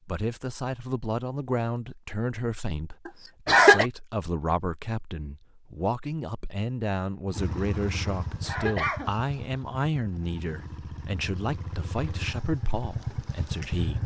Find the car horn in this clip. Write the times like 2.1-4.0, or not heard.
not heard.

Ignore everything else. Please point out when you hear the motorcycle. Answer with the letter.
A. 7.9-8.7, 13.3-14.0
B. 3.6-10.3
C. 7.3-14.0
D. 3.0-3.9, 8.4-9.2
C.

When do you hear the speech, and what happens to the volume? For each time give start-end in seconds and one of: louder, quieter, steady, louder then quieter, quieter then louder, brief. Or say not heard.
0.1-14.0 steady.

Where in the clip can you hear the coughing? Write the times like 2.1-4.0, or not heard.
3.0-3.9, 8.4-9.2.